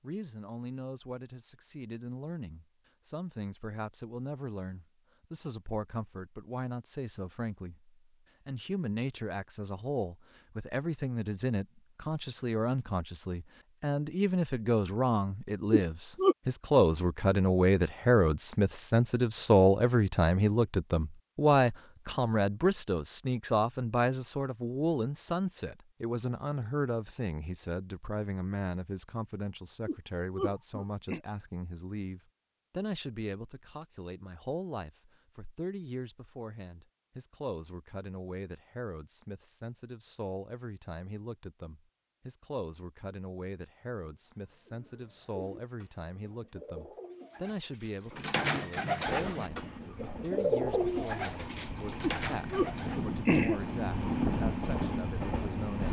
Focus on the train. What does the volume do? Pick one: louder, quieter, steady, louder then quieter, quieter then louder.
louder.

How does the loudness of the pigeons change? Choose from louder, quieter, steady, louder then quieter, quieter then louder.
louder then quieter.